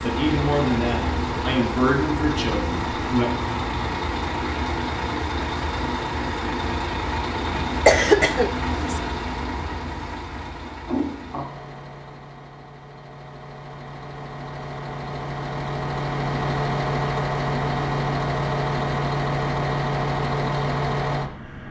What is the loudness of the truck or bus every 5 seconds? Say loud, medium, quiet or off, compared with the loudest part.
loud, loud, medium, loud, loud.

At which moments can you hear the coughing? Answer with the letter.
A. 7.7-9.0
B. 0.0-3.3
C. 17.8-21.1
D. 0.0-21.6
A.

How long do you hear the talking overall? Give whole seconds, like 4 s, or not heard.
3 s.